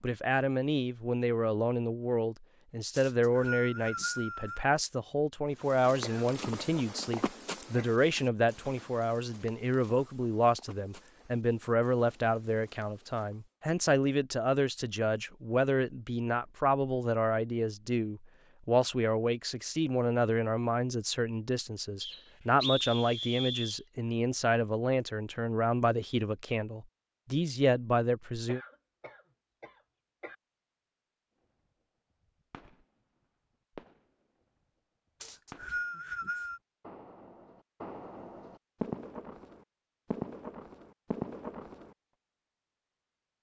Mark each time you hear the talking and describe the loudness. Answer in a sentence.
The talking can be heard from 0.0 to 28.6 s, at a steady volume.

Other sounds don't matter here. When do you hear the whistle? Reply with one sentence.
The whistle can be heard from 3.0 to 4.7 s, from 22.0 to 23.8 s and from 35.2 to 36.6 s.